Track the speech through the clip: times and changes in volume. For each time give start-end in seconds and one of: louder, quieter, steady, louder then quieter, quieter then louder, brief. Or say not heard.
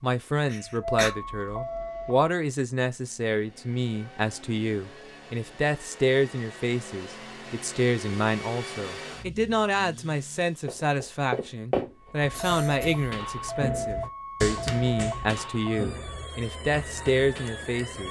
0.0-18.0 steady.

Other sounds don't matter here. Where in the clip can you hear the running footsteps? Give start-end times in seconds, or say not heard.
10.7-17.6.